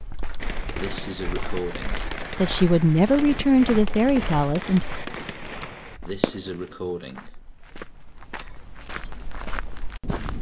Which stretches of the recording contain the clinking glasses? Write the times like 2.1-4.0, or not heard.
not heard.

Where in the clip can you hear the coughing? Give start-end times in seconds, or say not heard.
0.1-2.0, 5.5-7.3.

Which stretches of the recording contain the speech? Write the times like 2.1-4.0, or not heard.
2.3-4.8.